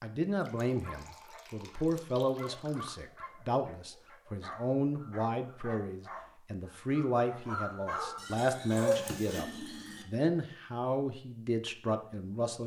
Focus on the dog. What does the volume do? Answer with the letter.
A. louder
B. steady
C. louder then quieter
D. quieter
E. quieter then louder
A.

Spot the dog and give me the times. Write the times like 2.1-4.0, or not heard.
0.8-9.4.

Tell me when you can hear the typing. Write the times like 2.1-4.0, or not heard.
not heard.